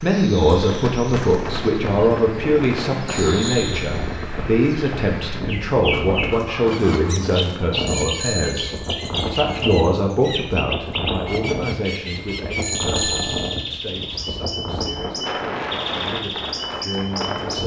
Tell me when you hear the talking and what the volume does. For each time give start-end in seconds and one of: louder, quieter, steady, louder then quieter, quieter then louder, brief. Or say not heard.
0.0-17.6 quieter.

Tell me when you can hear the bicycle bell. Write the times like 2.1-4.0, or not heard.
3.0-4.2, 7.8-8.9, 12.6-13.6.